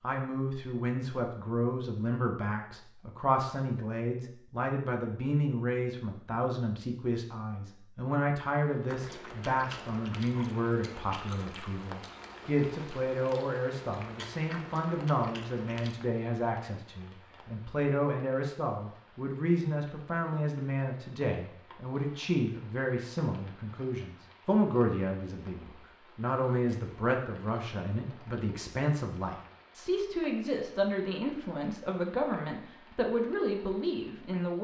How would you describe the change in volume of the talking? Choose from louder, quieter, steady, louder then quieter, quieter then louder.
steady.